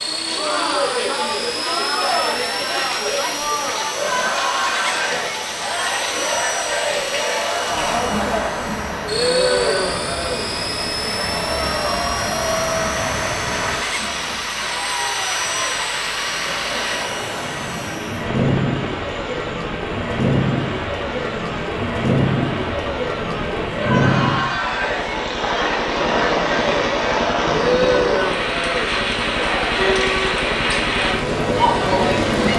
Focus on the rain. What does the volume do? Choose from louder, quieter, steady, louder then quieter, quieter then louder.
louder.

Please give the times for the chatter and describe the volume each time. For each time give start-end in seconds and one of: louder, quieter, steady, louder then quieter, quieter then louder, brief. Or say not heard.
0.1-32.5 quieter then louder.